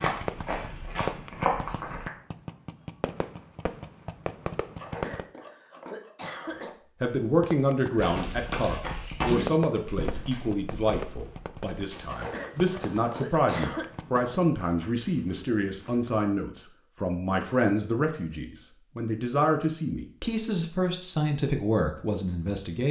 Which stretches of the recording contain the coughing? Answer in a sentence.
The coughing can be heard from 4.8 to 6.7 s and from 12.1 to 13.9 s.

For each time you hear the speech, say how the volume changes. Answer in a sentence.
The speech can be heard from 7.0 to 22.8 s, at a steady volume.